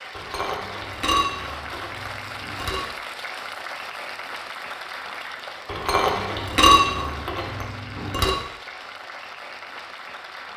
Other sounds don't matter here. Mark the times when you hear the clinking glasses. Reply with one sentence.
You can hear the clinking glasses from 0.1 to 2.9 s and from 5.7 to 8.3 s.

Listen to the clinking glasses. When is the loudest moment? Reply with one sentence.
The loudest moment of the clinking glasses is at 7 seconds.